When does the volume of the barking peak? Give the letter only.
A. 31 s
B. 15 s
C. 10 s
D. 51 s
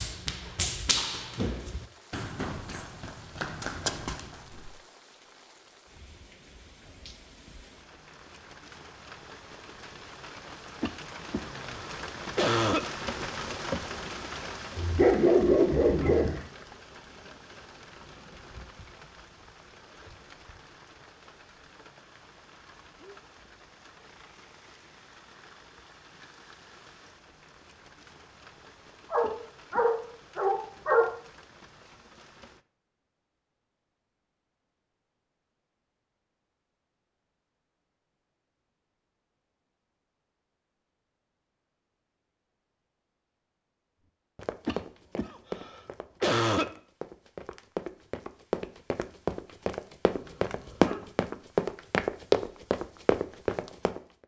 B.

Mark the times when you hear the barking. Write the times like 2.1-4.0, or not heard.
14.8-16.4, 29.1-31.1, 50.0-51.1.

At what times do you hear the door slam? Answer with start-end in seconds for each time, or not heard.
not heard.